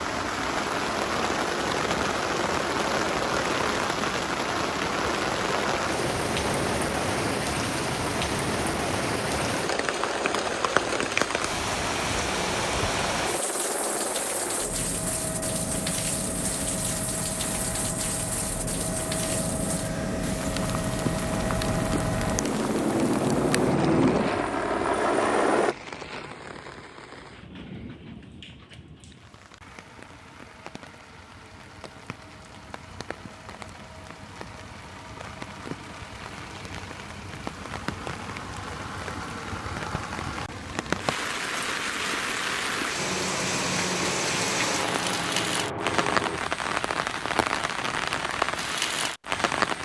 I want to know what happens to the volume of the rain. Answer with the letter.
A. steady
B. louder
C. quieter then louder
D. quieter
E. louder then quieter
C.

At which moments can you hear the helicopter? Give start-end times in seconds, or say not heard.
0.0-25.8, 43.0-46.4.